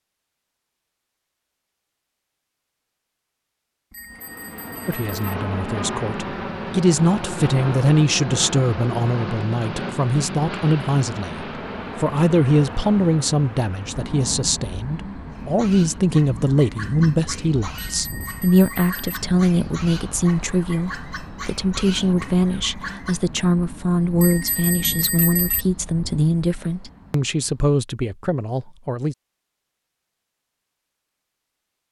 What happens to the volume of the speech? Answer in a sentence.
The loudness of the speech stays about the same.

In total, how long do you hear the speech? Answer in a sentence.
The speech can be heard for 24 seconds in total.